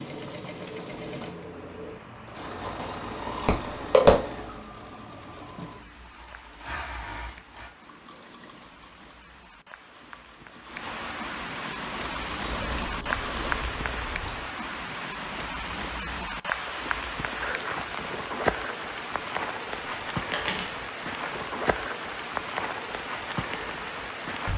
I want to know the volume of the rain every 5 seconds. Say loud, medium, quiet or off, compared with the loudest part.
quiet, quiet, loud, loud, loud.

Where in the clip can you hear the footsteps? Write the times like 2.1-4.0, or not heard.
not heard.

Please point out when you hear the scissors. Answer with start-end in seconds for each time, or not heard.
2.4-4.2, 12.6-14.4, 19.8-20.8.